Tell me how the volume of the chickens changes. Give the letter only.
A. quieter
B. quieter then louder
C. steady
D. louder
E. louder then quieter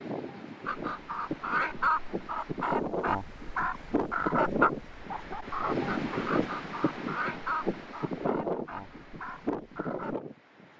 A.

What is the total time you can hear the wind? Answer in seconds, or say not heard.
11 s.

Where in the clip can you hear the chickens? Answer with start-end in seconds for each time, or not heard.
0.7-10.2.